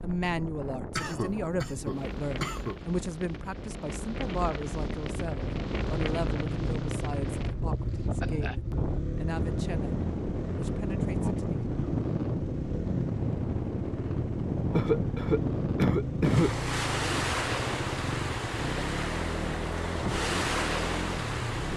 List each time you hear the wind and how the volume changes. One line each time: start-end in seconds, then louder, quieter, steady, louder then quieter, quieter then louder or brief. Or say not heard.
0.0-21.7 louder.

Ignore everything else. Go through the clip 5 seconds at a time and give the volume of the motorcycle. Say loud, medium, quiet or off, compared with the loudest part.
off, loud, loud, loud, loud.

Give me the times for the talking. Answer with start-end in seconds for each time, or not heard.
0.0-9.9, 10.6-11.7.